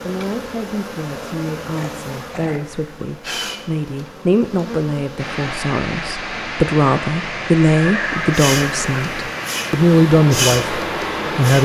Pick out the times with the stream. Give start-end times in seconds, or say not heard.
5.2-11.5.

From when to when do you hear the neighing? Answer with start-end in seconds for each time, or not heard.
1.7-3.0, 7.8-9.1.